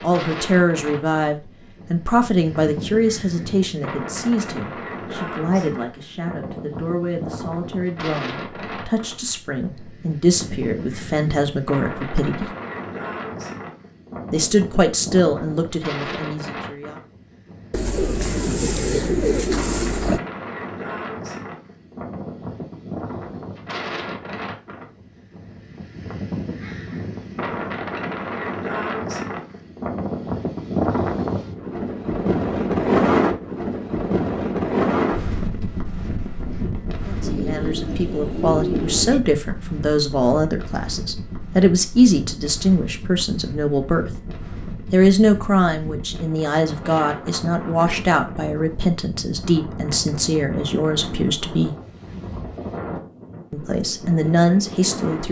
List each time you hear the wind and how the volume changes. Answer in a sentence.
You can hear the wind from 0.0 to 55.2 s, getting louder then quieter.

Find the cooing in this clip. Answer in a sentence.
You can hear the cooing from 17.7 to 20.2 s and from 37.2 to 39.2 s.